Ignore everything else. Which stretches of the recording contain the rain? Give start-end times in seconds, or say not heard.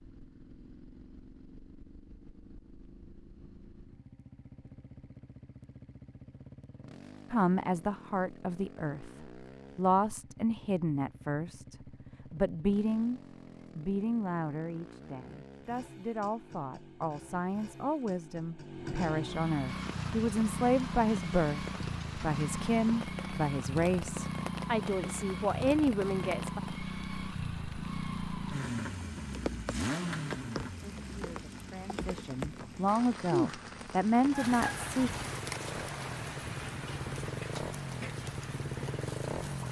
19.6-39.6.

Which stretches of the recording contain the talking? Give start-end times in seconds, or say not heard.
7.3-26.6, 30.8-35.1.